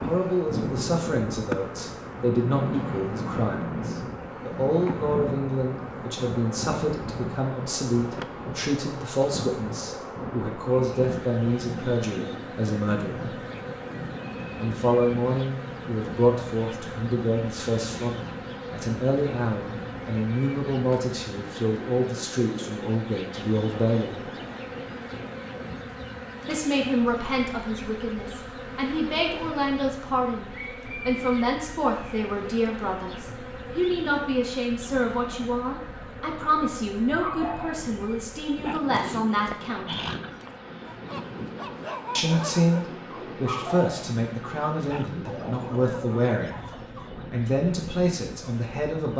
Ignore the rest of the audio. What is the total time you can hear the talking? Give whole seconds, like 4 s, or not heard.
43 s.